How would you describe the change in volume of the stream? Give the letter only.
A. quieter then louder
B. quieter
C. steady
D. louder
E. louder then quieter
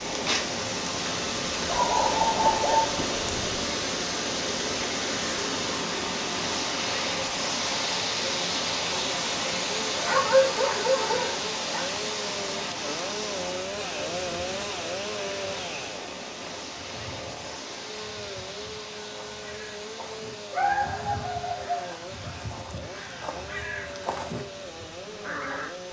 B.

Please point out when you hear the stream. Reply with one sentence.
You can hear the stream from 0.0 to 25.8 s.